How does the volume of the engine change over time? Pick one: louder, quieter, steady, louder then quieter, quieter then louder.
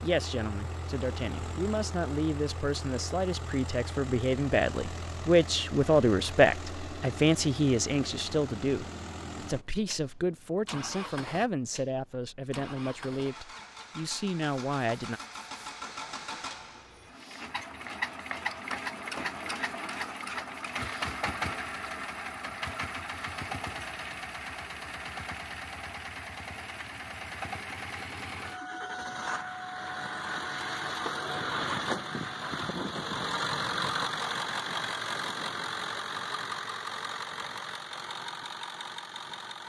louder.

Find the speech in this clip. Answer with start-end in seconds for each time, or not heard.
0.0-15.2.